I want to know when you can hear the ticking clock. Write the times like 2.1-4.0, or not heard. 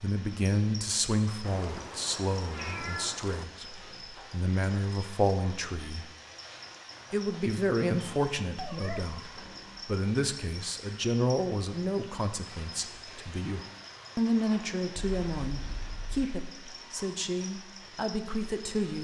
not heard.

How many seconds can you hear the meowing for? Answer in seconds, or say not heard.
4 s.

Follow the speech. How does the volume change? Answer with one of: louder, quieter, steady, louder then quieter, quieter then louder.
steady.